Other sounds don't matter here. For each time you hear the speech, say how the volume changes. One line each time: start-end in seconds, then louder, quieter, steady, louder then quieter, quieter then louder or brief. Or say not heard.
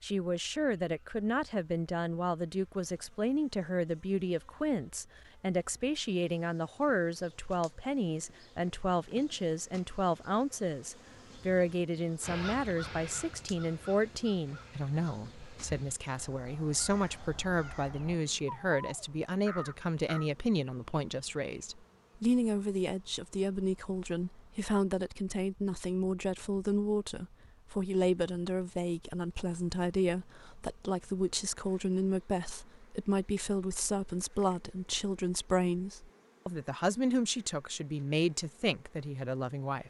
0.0-39.8 steady.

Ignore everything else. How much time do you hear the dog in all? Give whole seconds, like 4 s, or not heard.
not heard.